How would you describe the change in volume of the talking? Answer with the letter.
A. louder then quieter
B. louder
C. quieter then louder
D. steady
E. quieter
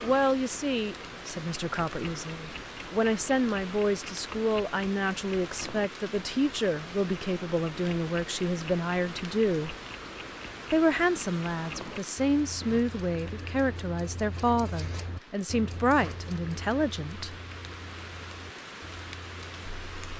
D.